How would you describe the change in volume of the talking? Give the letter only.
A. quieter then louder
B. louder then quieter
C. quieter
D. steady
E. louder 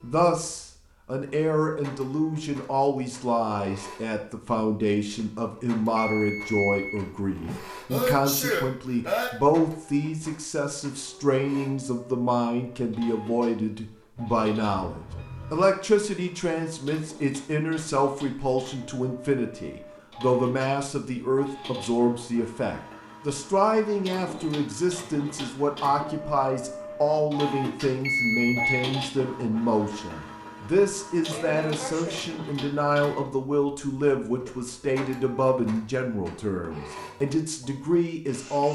D.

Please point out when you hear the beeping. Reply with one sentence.
The beeping can be heard from 6.0 to 7.7 s, from 14.2 to 15.7 s and from 28.1 to 28.9 s.